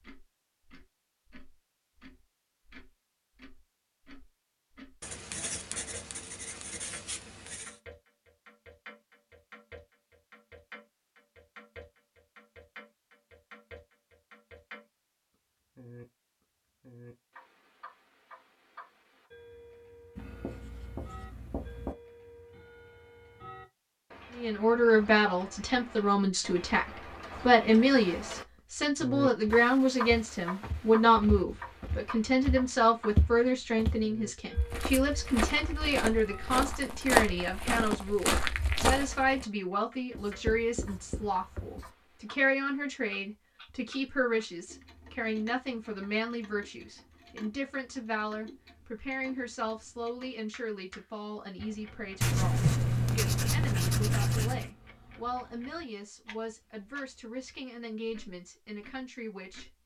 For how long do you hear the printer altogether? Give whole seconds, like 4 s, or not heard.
not heard.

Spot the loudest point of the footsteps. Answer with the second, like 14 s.
37 s.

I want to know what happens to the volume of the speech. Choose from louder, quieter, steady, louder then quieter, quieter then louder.
quieter.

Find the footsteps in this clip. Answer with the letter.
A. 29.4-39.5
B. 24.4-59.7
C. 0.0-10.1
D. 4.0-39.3
A.